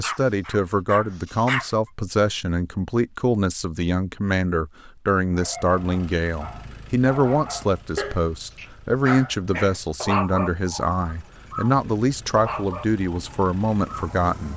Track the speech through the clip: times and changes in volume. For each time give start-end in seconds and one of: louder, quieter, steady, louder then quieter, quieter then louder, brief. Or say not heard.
0.0-14.5 steady.